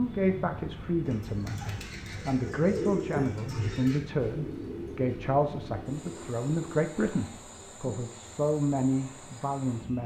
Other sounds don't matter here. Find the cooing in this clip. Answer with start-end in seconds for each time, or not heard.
1.0-6.8.